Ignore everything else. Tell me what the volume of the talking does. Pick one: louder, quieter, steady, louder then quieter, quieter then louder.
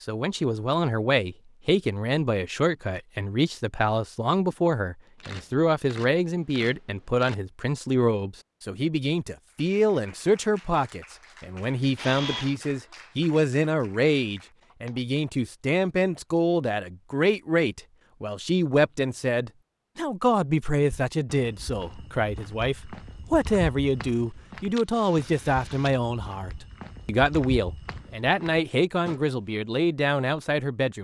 steady.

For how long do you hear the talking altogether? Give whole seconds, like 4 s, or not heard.
31 s.